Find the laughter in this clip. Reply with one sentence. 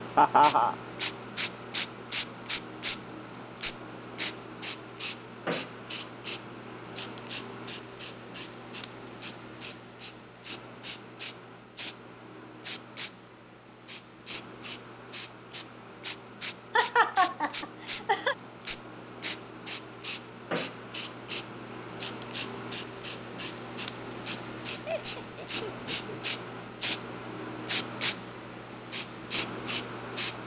You can hear the laughter from 0.1 to 0.8 s, from 16.8 to 18.4 s and from 24.9 to 26.2 s.